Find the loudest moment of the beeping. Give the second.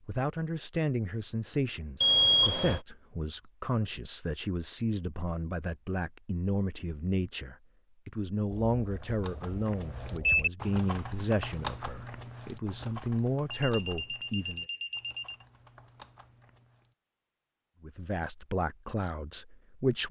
2 s.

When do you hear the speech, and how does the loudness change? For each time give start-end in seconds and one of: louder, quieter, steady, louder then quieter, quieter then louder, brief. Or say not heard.
0.1-14.7 steady
17.8-20.0 brief.